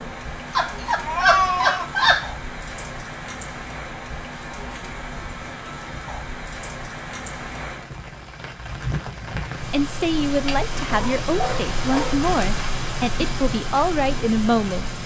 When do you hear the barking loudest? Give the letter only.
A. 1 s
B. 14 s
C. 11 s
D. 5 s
A.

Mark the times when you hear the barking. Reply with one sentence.
The barking can be heard from 0.6 to 2.3 s and from 10.3 to 12.2 s.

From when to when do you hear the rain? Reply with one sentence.
You can hear the rain from 0.0 to 15.0 s.